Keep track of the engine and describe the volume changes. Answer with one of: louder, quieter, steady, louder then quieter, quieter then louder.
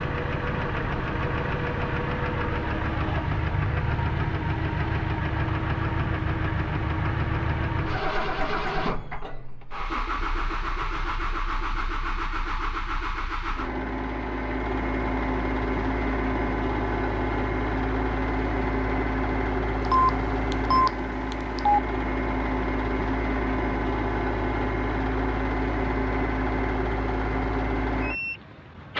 steady.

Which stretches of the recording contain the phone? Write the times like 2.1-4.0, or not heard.
19.9-21.8.